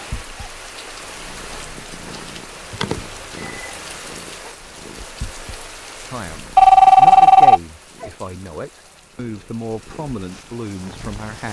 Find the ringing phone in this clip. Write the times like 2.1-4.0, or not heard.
2.7-3.7, 6.5-7.6.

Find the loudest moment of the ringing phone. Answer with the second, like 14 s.
7 s.